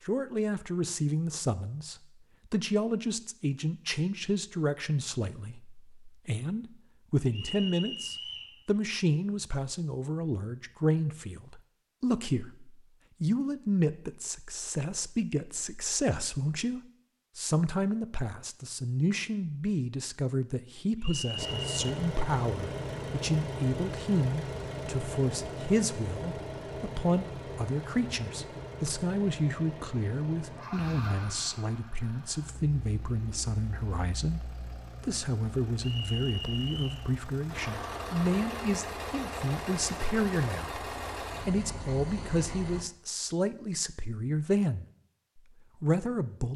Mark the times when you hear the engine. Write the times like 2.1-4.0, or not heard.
21.4-42.9.